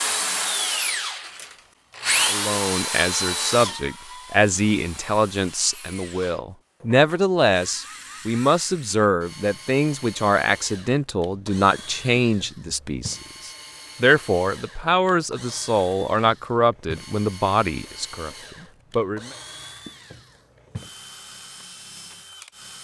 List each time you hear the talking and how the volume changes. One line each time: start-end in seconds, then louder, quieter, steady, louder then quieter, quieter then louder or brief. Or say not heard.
2.2-19.4 steady.